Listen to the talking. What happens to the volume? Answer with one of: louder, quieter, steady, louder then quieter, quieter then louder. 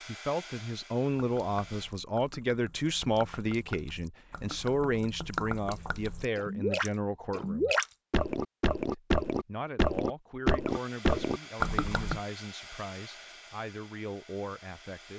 quieter.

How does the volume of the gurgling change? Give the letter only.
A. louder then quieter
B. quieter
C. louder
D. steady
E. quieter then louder
C.